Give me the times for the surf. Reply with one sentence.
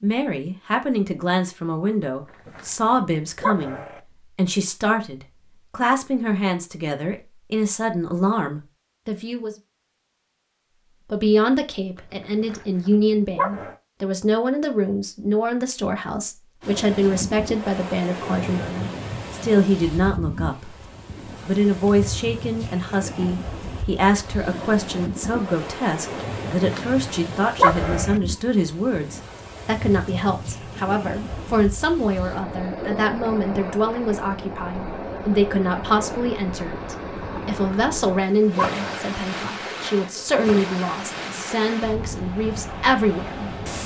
You can hear the surf from 16.6 to 43.8 s.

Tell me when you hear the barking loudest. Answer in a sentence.
The loudest moment of the barking is at 28 seconds.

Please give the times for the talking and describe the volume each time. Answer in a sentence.
You can hear the talking from 0.0 to 9.6 s, at a steady volume; and from 11.1 to 43.5 s, at a steady volume.